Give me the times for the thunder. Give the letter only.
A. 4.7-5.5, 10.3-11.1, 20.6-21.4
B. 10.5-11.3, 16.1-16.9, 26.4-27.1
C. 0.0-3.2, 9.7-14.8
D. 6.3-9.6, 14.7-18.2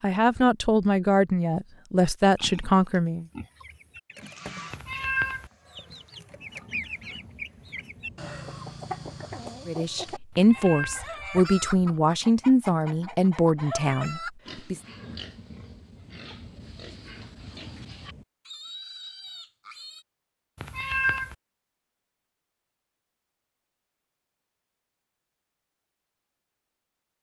D.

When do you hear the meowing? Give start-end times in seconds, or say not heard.
4.7-5.5, 10.3-11.1, 20.6-21.4.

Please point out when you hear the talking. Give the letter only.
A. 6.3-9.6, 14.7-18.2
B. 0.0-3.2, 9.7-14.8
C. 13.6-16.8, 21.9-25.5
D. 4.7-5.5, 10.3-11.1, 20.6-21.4
B.